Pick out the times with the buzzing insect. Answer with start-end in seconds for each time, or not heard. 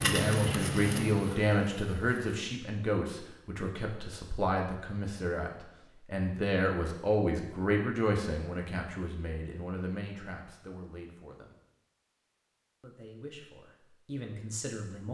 0.0-2.6.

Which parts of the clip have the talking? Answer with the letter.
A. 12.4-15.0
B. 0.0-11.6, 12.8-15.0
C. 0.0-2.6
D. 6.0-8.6
B.